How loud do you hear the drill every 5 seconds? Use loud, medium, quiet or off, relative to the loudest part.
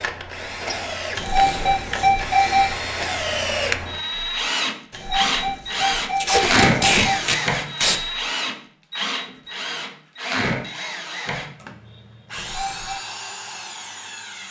loud, loud, medium.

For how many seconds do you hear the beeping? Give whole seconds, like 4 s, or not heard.
5 s.